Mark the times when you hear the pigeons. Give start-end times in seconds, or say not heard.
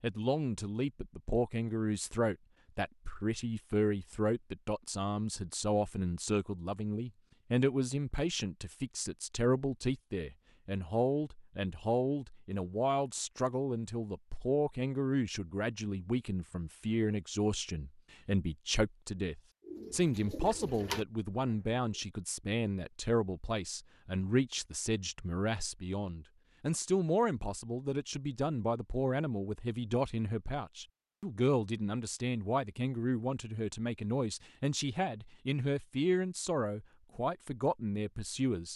19.6-21.9.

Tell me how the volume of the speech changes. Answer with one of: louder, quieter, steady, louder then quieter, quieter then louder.
steady.